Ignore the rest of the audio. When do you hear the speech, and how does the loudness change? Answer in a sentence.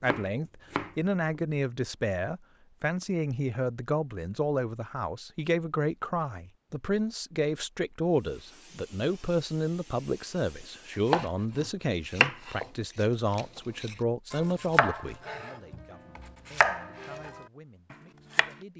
The speech can be heard from 0.0 to 18.7 s, getting quieter.